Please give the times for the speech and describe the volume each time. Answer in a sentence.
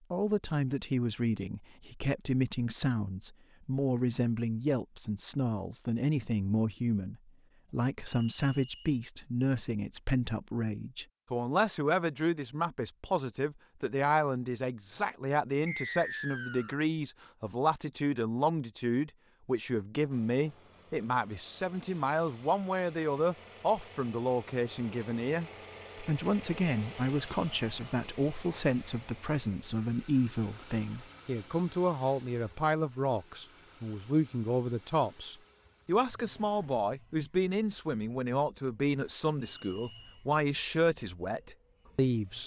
The speech can be heard from 0.1 to 42.4 s, at a steady volume.